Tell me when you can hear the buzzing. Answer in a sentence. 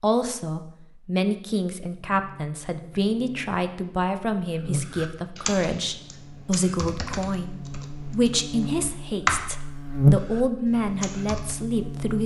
The buzzing can be heard from 1.9 to 12.2 s.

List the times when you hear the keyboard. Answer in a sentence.
The keyboard can be heard from 4.8 to 9.5 s and from 10.2 to 11.6 s.